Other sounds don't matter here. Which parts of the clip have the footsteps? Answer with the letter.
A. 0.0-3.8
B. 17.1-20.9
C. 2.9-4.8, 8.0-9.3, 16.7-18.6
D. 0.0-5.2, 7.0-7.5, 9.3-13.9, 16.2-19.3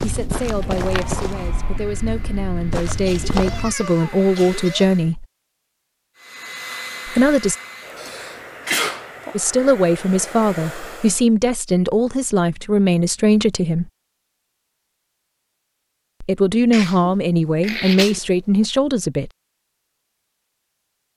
A.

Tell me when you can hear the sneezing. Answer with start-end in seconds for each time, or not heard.
2.9-4.8, 8.0-9.3, 16.7-18.6.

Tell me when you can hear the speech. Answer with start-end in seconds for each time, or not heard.
0.0-5.2, 7.0-7.5, 9.3-13.9, 16.2-19.3.